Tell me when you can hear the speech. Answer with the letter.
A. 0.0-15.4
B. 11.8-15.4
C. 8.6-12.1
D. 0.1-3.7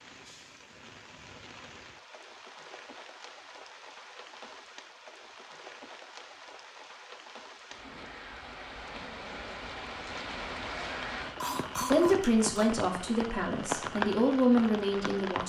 B.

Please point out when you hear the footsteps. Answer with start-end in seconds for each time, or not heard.
not heard.